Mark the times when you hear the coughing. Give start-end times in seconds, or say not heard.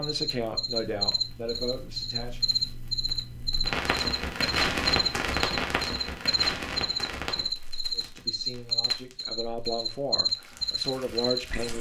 not heard.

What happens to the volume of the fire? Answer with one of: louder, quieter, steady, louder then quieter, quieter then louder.
louder then quieter.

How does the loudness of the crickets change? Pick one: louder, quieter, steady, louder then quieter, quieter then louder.
steady.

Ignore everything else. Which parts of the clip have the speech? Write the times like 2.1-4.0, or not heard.
0.0-2.5, 8.0-11.7.